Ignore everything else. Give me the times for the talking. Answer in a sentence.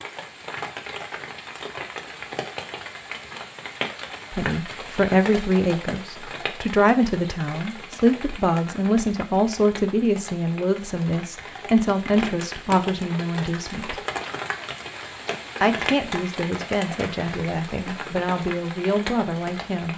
You can hear the talking from 4.3 to 14.0 s and from 15.6 to 19.9 s.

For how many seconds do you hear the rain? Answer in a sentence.
You can hear the rain for 20 seconds altogether.